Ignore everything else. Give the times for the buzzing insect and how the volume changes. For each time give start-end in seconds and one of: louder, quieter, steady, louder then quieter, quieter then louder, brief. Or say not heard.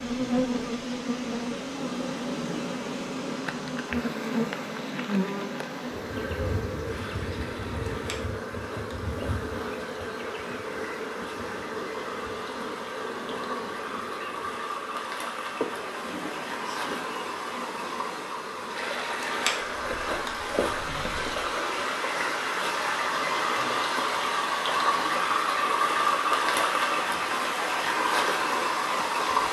0.0-29.4 quieter.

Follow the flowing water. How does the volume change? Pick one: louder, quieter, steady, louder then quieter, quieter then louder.
louder.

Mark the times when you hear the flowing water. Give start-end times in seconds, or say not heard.
0.0-29.4.